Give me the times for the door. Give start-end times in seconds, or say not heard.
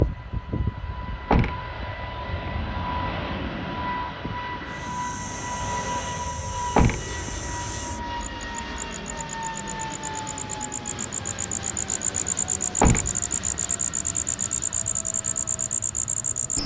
1.3-2.5, 6.7-7.5, 12.8-13.6.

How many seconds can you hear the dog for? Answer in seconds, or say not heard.
not heard.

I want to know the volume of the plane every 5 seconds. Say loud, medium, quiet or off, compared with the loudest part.
loud, loud, medium, medium.